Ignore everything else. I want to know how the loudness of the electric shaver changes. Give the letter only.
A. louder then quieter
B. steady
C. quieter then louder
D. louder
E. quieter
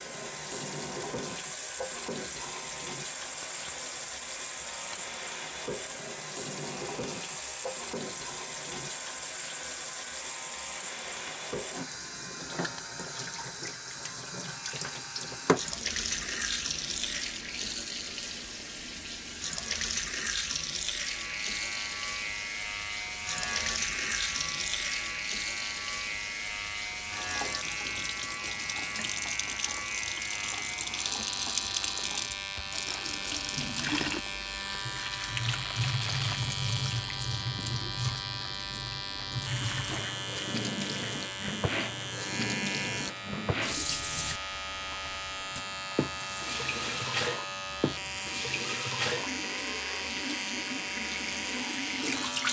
D.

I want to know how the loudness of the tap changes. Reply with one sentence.
The volume of the tap stays about the same.